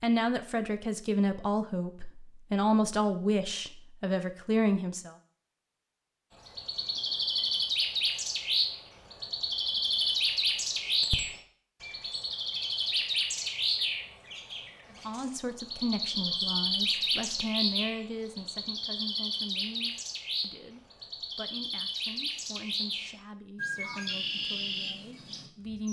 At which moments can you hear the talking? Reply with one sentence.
The talking can be heard from 0.0 to 5.2 s and from 15.1 to 25.8 s.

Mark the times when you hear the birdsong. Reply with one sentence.
The birdsong can be heard from 6.5 to 25.8 s.